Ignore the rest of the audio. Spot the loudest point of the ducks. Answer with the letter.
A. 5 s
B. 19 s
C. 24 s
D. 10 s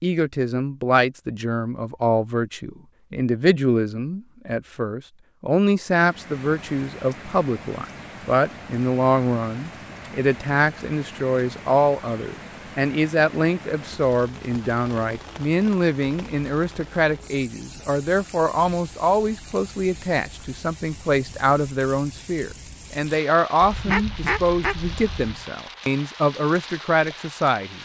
C.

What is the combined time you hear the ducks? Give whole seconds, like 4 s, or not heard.
2 s.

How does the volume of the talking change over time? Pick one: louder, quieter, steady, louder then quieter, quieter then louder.
steady.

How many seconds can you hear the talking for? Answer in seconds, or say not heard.
28 s.